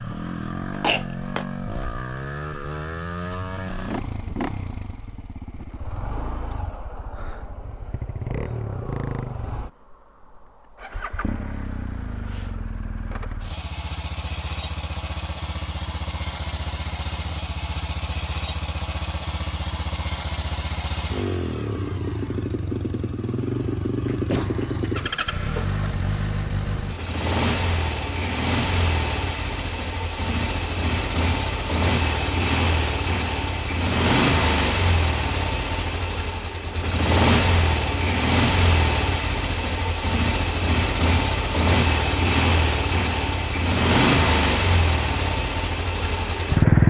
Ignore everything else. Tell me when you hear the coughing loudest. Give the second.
1 s.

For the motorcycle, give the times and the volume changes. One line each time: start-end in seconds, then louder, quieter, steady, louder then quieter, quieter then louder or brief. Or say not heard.
0.0-46.8 louder.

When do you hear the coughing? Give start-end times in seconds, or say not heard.
0.7-1.4, 24.1-25.8.